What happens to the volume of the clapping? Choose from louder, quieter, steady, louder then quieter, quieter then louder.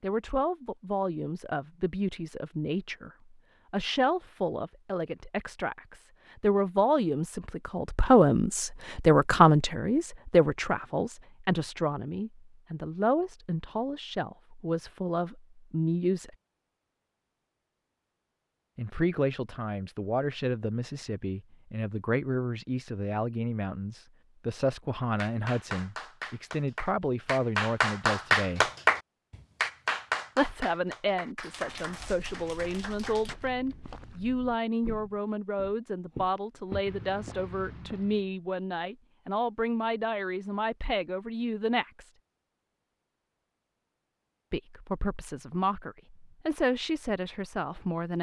louder then quieter.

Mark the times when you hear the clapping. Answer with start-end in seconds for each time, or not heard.
25.2-33.4.